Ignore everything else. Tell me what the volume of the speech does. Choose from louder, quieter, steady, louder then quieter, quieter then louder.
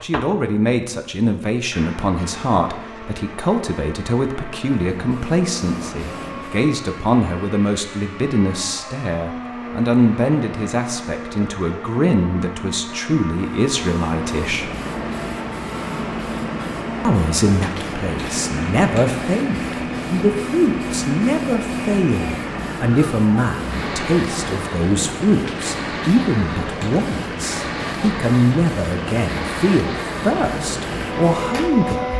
steady.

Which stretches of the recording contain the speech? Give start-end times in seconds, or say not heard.
0.0-14.7, 17.0-32.1.